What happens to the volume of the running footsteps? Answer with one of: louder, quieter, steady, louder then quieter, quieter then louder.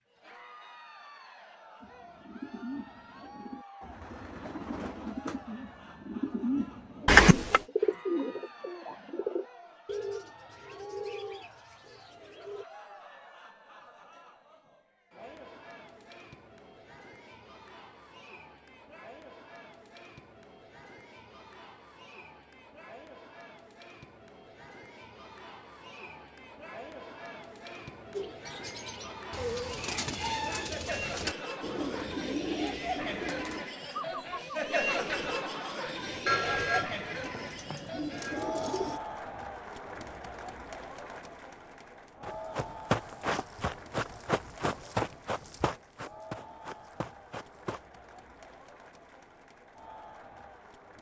quieter.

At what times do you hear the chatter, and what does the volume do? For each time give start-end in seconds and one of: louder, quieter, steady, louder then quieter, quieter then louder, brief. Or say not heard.
0.1-50.9 louder then quieter.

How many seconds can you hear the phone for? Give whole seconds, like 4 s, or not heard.
3 s.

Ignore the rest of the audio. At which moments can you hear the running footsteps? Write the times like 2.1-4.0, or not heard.
42.2-47.8.